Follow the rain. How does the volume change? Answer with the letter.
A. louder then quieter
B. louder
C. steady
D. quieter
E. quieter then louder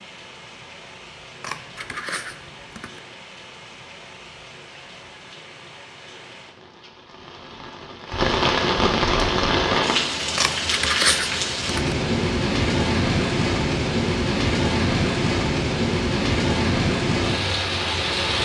B.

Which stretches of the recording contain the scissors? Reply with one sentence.
You can hear the scissors from 1.4 to 3.0 s and from 10.3 to 11.9 s.